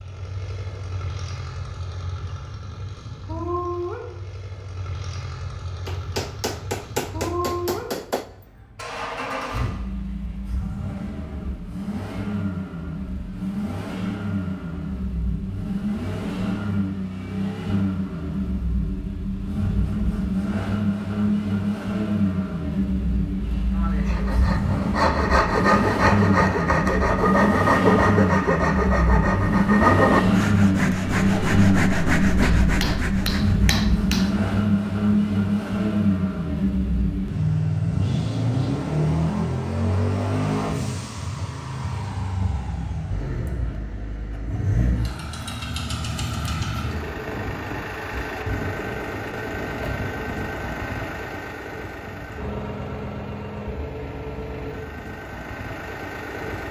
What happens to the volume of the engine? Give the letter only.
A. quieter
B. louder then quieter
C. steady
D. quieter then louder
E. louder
B.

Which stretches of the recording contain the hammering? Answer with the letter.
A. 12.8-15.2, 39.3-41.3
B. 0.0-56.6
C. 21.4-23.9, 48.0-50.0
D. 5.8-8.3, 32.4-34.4
D.